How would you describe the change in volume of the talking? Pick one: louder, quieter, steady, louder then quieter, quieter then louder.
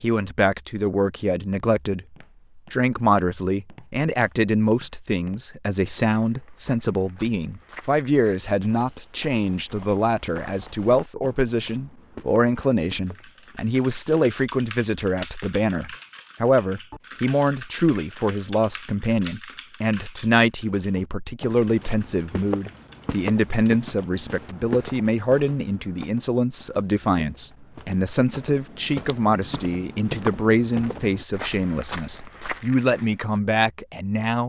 steady.